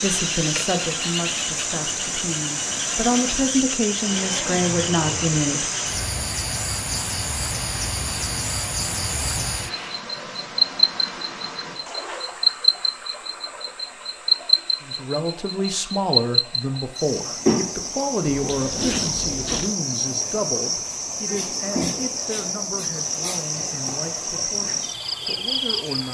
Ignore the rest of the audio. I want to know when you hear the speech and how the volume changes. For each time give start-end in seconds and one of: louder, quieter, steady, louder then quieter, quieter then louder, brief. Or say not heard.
0.0-6.0 quieter then louder
14.8-26.0 quieter.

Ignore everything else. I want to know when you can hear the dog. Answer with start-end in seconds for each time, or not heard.
not heard.